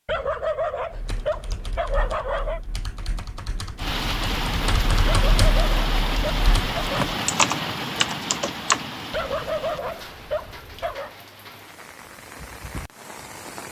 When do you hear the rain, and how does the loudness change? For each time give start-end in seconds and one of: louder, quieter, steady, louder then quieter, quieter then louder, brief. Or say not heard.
3.8-13.6 quieter.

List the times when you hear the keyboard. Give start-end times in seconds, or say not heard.
0.9-8.8.